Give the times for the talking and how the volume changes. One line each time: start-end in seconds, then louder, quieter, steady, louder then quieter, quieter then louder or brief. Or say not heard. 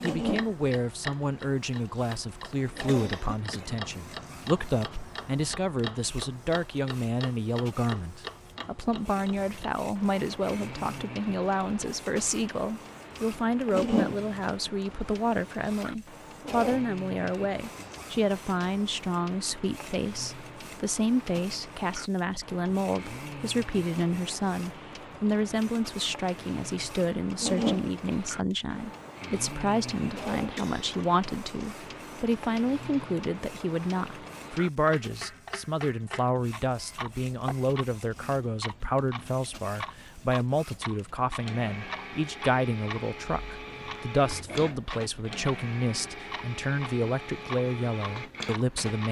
0.0-49.0 steady.